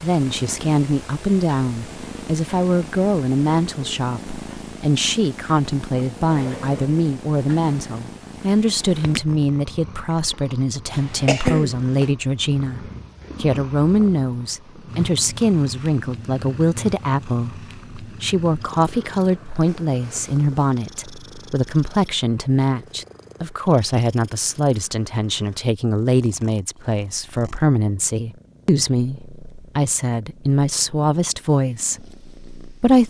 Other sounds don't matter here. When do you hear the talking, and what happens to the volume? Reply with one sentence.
You can hear the talking from 0.0 to 33.0 s, at a steady volume.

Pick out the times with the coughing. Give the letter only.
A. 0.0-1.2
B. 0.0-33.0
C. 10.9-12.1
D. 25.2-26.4
C.